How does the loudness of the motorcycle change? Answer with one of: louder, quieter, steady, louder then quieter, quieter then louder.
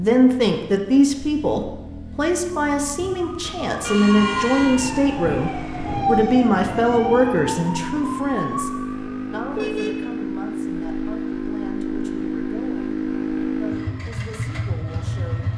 louder.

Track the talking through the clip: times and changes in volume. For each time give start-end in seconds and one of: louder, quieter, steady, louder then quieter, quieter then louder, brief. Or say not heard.
0.0-15.5 quieter.